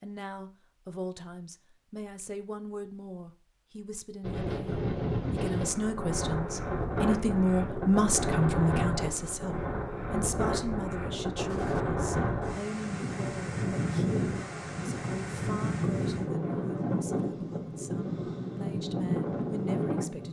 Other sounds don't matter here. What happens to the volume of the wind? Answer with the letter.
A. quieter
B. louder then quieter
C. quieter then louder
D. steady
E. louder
D.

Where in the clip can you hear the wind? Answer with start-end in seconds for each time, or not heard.
4.2-20.2.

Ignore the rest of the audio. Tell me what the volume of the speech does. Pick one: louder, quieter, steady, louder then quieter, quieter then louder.
louder then quieter.